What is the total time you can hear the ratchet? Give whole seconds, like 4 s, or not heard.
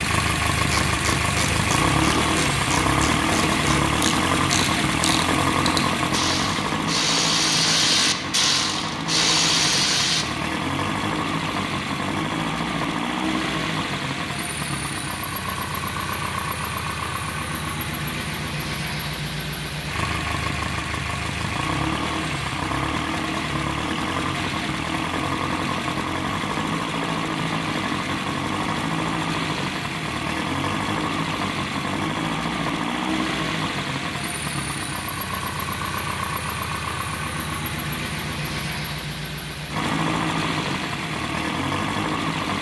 10 s.